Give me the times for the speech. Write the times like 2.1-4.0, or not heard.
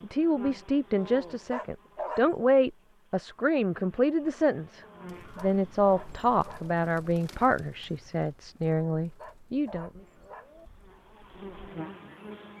0.0-10.0.